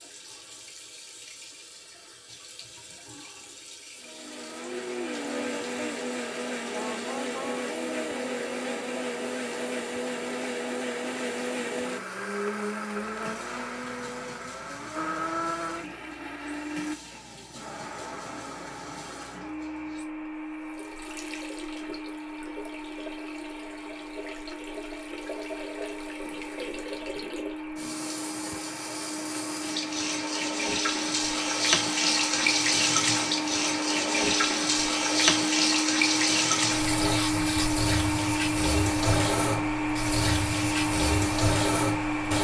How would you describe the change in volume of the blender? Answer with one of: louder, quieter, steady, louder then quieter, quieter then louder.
quieter then louder.